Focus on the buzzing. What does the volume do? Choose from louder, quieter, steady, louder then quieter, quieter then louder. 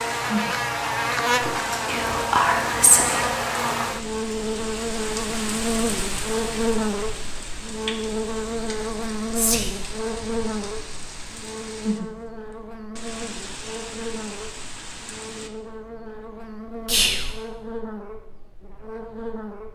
quieter.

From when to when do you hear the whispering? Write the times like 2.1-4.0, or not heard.
1.9-3.3, 9.3-9.8, 16.9-17.4.